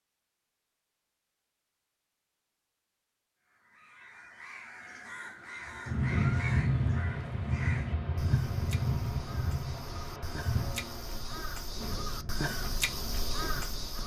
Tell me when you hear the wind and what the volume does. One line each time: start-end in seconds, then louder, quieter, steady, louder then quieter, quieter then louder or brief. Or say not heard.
5.7-14.0 quieter.